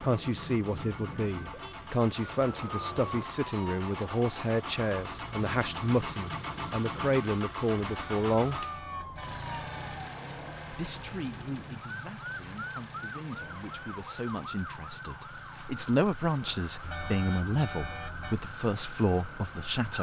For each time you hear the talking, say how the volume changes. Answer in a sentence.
The talking can be heard from 0.0 to 8.6 s, at a steady volume; and from 10.7 to 19.9 s, getting louder.